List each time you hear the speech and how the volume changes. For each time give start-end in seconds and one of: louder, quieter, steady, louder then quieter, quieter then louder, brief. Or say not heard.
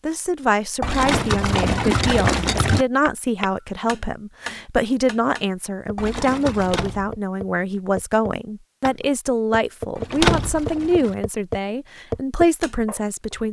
0.0-13.4 steady.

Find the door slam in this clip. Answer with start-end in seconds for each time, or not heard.
0.9-1.4, 6.6-7.2, 10.1-10.7.